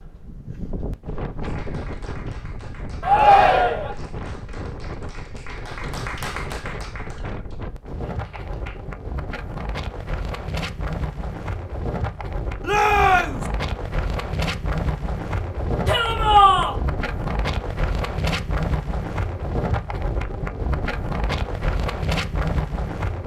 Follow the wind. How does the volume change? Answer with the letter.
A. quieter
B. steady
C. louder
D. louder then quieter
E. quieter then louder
C.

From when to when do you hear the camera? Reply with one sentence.
You can't hear the camera here.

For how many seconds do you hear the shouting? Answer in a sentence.
The shouting can be heard for 3 seconds in total.